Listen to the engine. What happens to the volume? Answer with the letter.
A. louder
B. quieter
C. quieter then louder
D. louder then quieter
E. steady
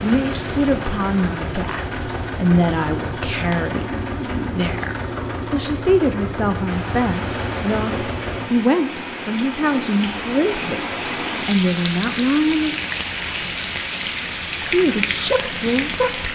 E.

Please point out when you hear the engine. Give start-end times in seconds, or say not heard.
0.0-8.5.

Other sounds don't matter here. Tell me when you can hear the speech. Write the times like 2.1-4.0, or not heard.
0.0-12.8, 14.6-16.3.